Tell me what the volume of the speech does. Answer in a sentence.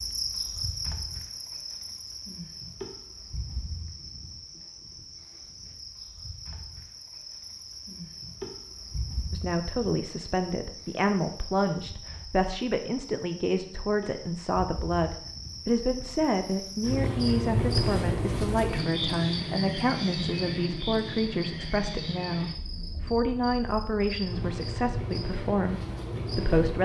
The volume of the speech stays about the same.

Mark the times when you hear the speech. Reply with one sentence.
The speech can be heard from 9.3 to 26.8 s.